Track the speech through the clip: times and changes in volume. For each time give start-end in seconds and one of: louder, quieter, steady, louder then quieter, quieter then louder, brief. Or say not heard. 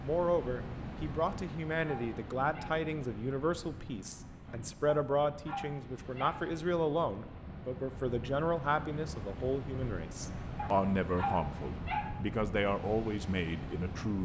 0.0-14.1 steady.